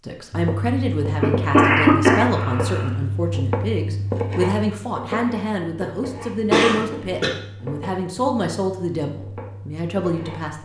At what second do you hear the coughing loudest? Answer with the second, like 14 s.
2 s.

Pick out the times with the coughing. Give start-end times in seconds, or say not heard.
1.2-2.9, 6.0-7.3.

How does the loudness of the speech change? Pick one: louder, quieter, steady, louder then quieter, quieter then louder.
steady.